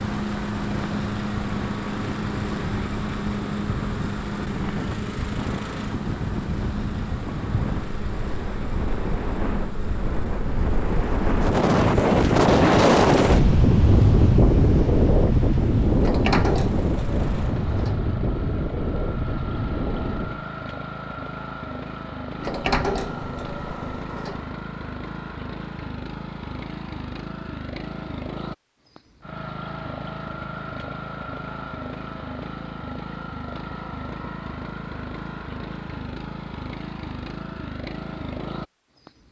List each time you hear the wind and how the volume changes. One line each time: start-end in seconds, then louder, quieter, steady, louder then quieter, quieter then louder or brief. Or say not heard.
0.0-20.4 louder then quieter.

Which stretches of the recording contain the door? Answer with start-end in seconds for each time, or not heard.
16.0-18.0, 22.4-24.4.